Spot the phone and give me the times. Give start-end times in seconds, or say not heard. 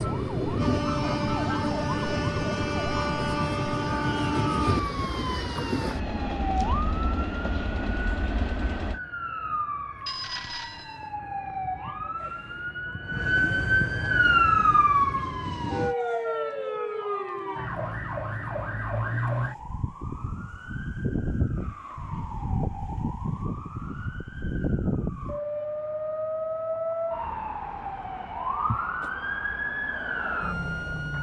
10.1-11.1.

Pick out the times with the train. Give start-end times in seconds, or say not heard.
0.0-9.0, 14.2-15.9.